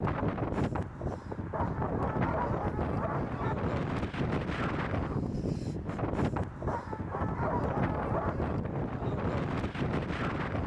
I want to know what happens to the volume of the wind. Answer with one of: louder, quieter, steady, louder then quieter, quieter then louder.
steady.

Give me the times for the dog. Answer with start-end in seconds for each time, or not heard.
1.5-3.5, 6.7-8.6.